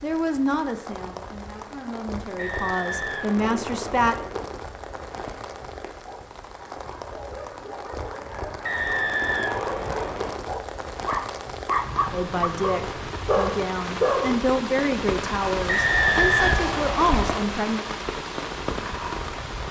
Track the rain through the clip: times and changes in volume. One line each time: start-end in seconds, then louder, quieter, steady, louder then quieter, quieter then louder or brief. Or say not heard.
0.0-19.6 louder.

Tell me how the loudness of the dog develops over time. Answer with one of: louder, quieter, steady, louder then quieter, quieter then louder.
louder.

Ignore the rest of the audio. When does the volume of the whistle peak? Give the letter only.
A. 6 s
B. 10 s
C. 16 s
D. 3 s
C.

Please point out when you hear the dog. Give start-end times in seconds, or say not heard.
6.0-14.4.